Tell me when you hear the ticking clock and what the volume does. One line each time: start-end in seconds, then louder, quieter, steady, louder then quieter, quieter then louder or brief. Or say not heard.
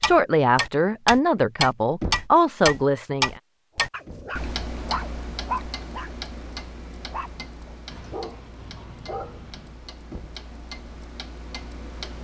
0.0-12.1 quieter.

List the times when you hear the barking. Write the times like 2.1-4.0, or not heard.
3.9-9.8.